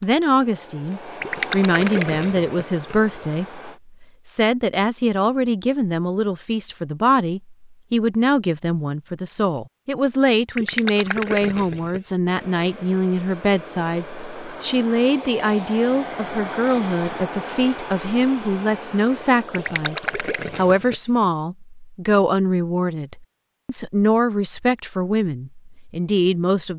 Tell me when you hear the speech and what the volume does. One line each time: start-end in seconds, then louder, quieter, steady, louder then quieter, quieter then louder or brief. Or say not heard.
0.0-26.7 steady.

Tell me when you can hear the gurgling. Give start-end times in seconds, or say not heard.
1.2-3.0, 10.6-12.0, 19.5-21.2.